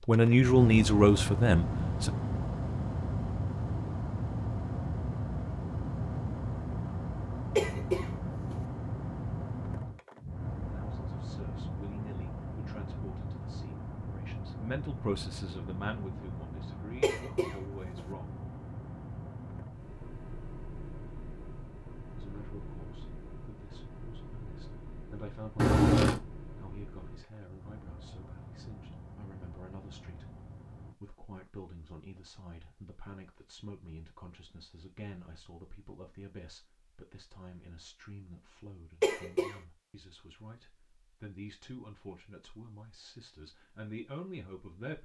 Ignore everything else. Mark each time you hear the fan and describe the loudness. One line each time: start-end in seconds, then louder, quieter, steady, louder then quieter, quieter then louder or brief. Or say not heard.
0.0-30.9 quieter.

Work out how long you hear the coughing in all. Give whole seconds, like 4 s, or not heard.
2 s.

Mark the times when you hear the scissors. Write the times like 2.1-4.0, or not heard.
25.6-26.2.